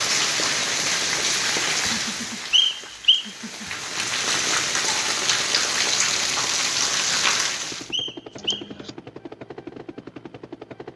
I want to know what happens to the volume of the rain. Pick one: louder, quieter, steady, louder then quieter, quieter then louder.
quieter then louder.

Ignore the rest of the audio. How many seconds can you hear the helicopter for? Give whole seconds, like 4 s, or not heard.
3 s.